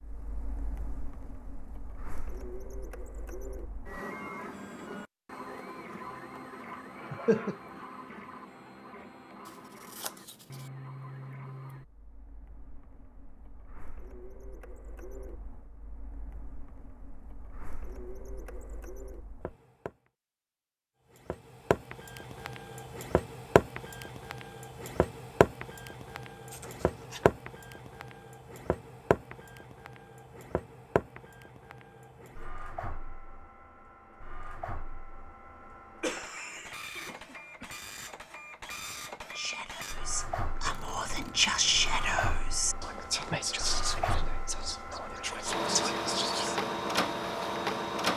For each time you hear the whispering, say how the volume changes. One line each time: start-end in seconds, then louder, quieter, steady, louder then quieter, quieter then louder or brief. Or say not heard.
39.2-46.6 louder then quieter.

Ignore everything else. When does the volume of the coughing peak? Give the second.
7 s.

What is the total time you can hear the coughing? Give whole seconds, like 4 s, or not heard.
2 s.